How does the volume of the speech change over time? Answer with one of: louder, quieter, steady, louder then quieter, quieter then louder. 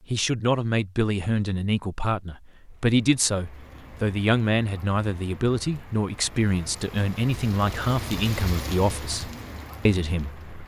steady.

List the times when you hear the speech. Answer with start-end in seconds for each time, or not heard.
0.1-10.6.